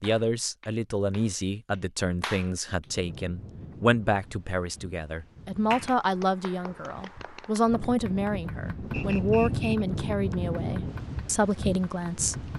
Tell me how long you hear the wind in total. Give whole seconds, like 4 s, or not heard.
10 s.